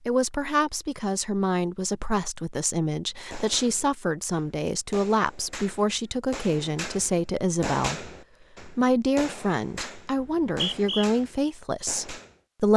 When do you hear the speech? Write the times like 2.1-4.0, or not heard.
0.1-12.7.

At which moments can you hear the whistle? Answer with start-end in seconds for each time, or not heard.
10.2-11.1.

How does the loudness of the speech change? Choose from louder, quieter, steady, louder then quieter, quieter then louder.
steady.